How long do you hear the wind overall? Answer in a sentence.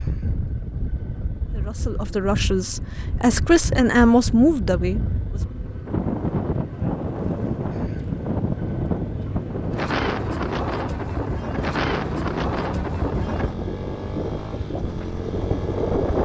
The wind can be heard for 16 seconds in total.